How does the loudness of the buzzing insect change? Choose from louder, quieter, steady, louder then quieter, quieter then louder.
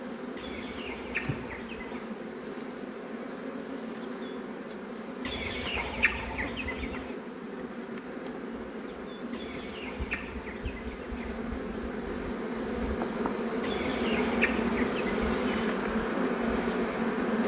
louder.